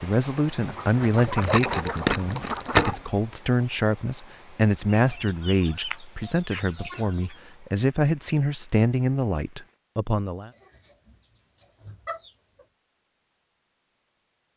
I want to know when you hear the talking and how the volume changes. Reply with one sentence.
You can hear the talking from 0.0 to 10.5 s, at a steady volume.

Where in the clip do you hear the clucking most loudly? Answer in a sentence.
The loudest moment of the clucking is at 3 seconds.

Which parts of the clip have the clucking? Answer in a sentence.
You can hear the clucking from 0.6 to 3.0 s, from 4.9 to 7.3 s and from 10.5 to 12.7 s.